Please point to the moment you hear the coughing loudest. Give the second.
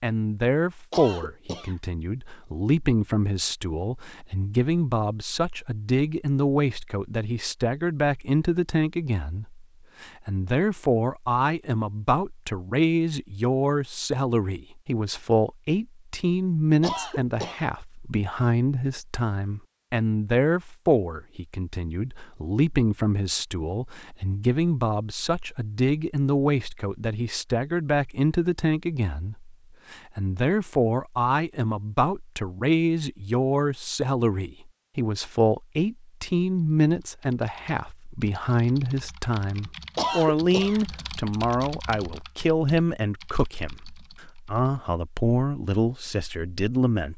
40 s.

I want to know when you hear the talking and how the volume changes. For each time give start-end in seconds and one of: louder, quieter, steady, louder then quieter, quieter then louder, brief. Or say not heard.
0.0-47.1 steady.